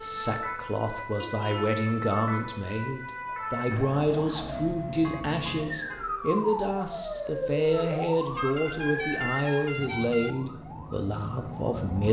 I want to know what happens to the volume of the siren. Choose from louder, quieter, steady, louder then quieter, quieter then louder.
quieter.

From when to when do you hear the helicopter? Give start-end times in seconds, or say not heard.
9.8-12.0.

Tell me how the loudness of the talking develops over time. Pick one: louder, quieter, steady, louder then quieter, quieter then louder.
steady.